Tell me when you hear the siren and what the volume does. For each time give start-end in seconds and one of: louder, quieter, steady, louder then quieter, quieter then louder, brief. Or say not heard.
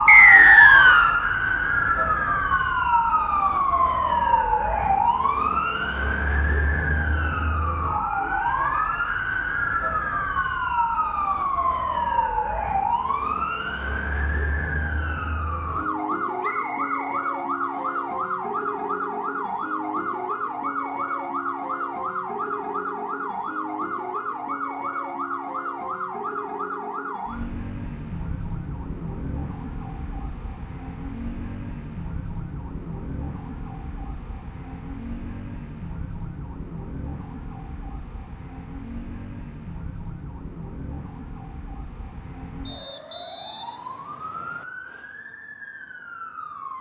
0.0-46.7 quieter.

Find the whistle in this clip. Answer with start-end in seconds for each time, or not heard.
0.1-1.1, 16.4-17.9, 42.6-44.6.